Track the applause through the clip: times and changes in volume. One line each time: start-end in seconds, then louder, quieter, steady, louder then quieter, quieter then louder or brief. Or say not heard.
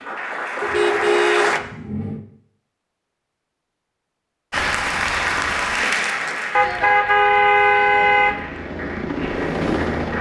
0.0-1.6 brief
4.5-10.1 quieter.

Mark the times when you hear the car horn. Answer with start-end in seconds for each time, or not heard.
0.6-2.2, 6.5-8.4.